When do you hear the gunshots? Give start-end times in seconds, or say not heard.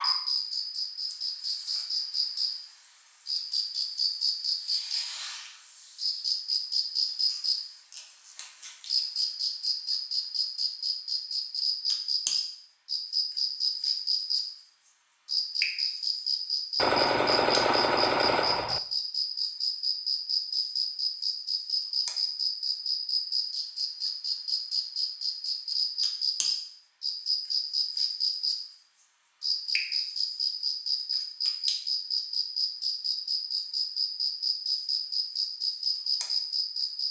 16.8-18.8.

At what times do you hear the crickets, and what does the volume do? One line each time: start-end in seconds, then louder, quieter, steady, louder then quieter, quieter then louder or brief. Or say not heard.
0.0-37.0 steady.